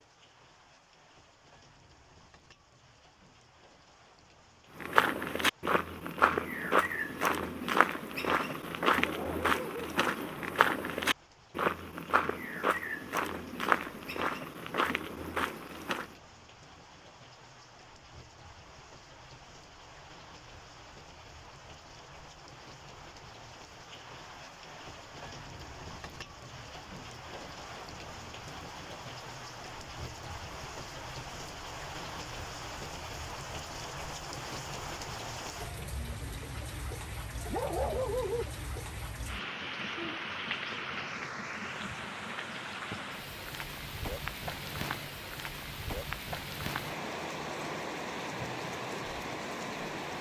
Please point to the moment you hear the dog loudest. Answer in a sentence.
The volume of the dog peaks at 38 seconds.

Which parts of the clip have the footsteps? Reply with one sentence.
You can hear the footsteps from 4.8 to 16.1 s.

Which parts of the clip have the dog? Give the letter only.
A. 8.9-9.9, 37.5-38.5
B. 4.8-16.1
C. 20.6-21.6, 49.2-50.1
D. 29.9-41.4
A.